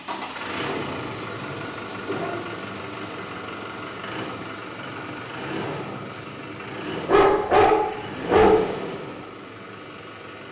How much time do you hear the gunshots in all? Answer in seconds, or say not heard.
2 s.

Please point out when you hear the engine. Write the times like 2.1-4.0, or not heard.
0.0-10.4.